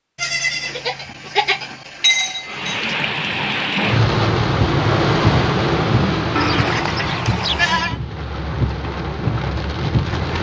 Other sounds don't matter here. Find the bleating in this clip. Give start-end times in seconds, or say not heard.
0.1-3.0, 6.3-8.0.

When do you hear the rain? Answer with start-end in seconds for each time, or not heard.
2.5-10.3.